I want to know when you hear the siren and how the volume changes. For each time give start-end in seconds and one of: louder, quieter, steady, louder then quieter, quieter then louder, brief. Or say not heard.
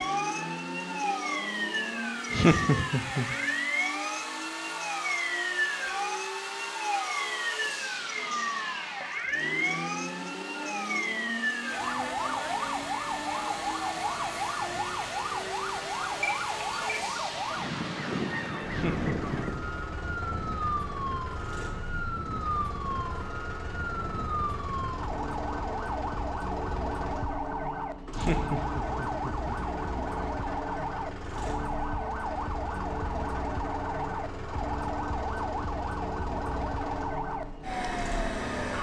0.0-38.7 steady.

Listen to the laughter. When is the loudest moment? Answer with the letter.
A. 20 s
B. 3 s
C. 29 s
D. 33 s
B.